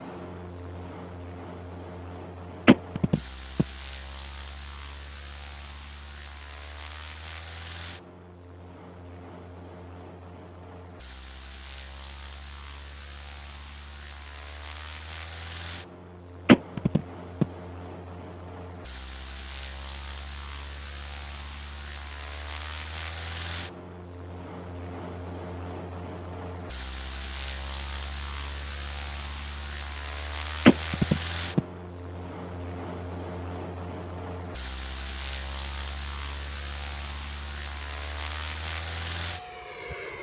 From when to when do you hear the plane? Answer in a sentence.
The plane can be heard from 0.0 to 40.1 s.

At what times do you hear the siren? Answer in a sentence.
The siren can't be heard in this clip.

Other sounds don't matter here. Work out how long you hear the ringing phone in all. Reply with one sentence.
You can hear the ringing phone for 3 seconds altogether.